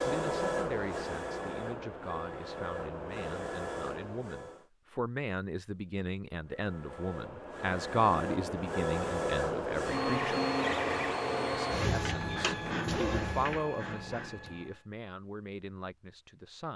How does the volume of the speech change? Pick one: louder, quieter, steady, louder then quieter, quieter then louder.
louder then quieter.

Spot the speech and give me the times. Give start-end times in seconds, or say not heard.
0.0-10.4, 11.8-16.7.